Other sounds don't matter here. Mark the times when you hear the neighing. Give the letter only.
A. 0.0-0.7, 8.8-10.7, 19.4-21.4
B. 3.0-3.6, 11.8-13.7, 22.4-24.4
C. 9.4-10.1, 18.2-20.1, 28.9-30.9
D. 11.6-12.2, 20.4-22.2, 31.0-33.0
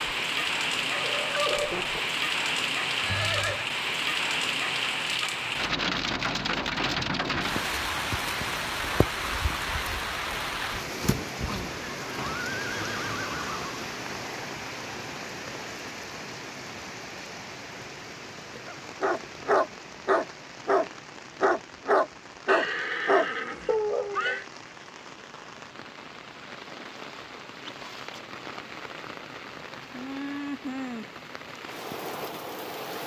B.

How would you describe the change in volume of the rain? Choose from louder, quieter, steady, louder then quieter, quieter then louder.
quieter then louder.